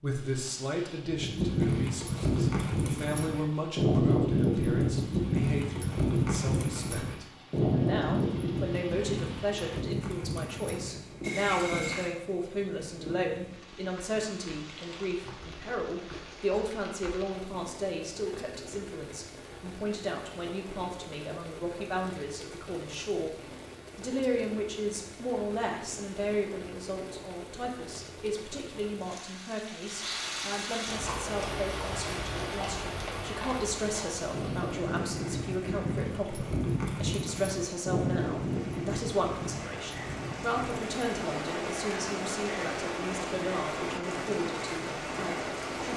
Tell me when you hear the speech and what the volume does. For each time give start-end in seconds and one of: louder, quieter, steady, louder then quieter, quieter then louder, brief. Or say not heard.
0.0-45.9 steady.